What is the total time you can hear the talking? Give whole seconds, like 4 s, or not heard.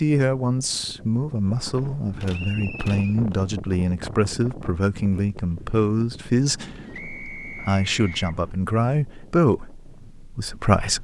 11 s.